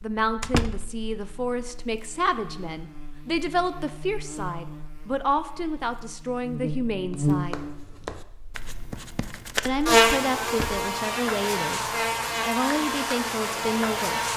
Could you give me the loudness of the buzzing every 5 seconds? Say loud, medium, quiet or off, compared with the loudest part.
quiet, loud, loud.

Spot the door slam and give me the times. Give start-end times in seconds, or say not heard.
0.4-0.9, 10.4-10.8.